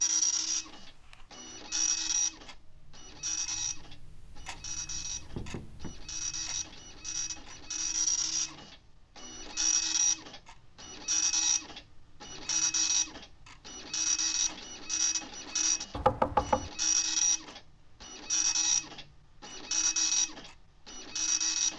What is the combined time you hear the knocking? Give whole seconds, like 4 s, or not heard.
2 s.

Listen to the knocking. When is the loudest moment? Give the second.
16 s.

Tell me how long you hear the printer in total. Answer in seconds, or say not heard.
22 s.